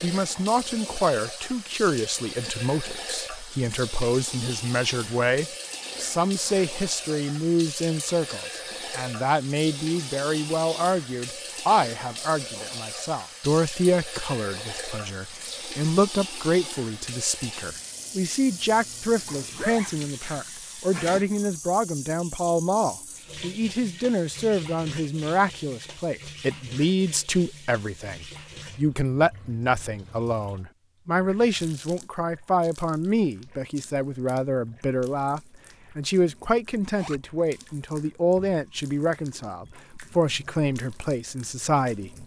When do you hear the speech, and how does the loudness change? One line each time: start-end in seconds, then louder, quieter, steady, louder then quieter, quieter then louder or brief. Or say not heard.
0.0-42.1 steady.